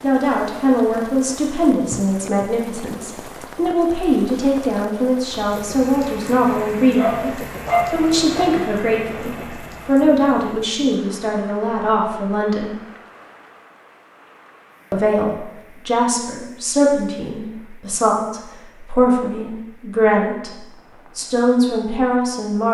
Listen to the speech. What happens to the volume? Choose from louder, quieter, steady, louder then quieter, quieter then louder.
steady.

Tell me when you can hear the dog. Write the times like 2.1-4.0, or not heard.
7.0-8.5.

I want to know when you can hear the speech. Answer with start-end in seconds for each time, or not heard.
0.0-12.8, 14.9-22.6.